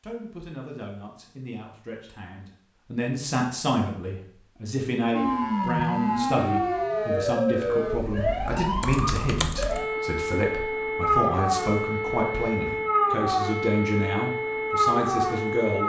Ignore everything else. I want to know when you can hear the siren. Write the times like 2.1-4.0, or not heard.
5.1-15.8.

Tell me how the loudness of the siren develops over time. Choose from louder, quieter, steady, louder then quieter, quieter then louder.
steady.